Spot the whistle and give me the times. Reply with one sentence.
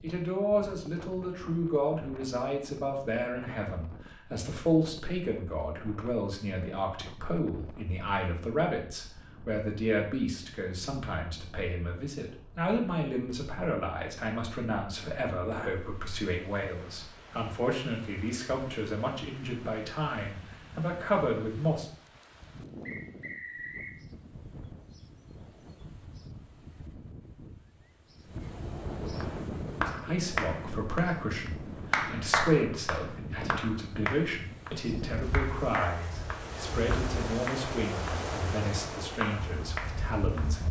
The whistle can be heard from 22.9 to 23.9 s.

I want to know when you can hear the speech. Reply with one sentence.
You can hear the speech from 0.0 to 21.9 s and from 29.9 to 40.6 s.